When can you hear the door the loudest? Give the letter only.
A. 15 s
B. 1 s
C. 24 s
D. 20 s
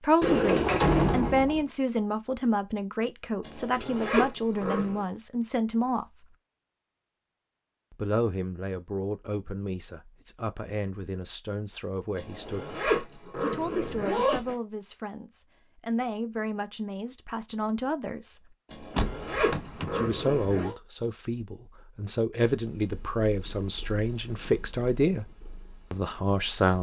B.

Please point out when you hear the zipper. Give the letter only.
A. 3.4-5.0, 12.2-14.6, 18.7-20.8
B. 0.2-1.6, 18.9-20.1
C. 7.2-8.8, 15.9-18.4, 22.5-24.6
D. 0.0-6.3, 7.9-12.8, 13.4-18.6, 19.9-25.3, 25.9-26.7
A.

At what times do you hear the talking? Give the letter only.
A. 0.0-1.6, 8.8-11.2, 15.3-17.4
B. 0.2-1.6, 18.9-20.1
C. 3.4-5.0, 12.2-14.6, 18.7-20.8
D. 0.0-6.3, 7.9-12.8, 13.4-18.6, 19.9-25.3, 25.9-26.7
D.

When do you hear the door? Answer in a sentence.
The door can be heard from 0.2 to 1.6 s and from 18.9 to 20.1 s.